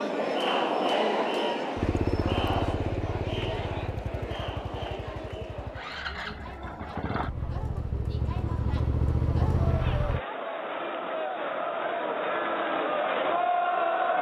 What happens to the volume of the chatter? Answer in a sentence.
The volume of the chatter goes down, then up.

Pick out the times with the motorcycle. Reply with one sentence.
You can hear the motorcycle from 1.8 to 10.2 s.